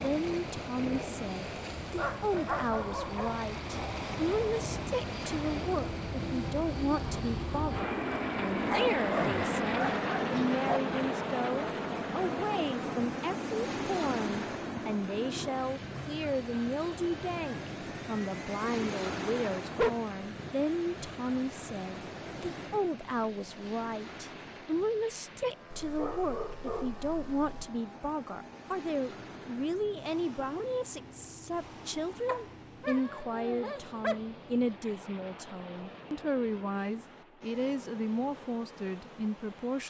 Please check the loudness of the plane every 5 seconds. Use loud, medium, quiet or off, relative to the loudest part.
medium, loud, loud, medium, quiet, quiet, quiet, quiet.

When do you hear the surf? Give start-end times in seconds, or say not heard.
0.0-39.8.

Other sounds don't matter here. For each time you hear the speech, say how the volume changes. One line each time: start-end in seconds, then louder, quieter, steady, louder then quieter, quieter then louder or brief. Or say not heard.
0.0-39.8 steady.